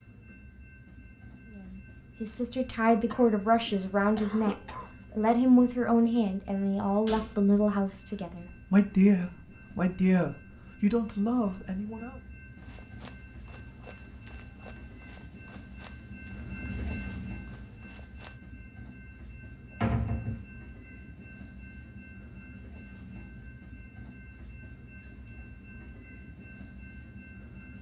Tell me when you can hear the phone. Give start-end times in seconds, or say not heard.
not heard.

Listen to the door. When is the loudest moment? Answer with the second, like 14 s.
20 s.